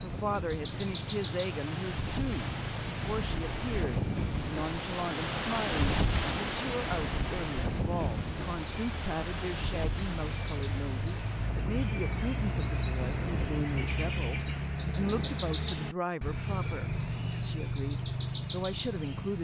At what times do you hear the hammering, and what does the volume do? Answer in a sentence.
The hammering can't be heard in this clip.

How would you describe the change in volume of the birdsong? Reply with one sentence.
The volume of the birdsong goes down, then up.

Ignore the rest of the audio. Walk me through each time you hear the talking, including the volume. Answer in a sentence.
You can hear the talking from 0.0 to 19.3 s, at a steady volume.